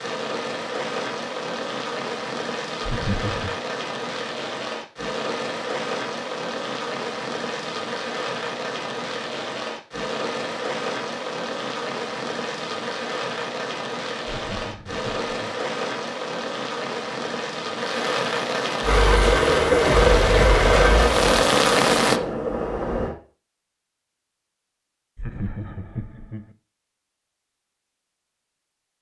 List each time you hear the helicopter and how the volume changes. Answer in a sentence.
You can hear the helicopter from 18.8 to 23.1 s, getting quieter.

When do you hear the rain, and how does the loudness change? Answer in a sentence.
You can hear the rain from 0.0 to 22.2 s, getting louder.